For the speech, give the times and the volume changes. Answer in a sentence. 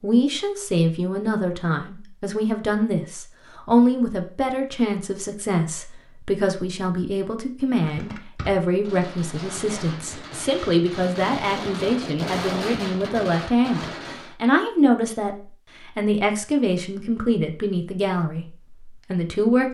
The speech can be heard from 0.0 to 19.6 s, at a steady volume.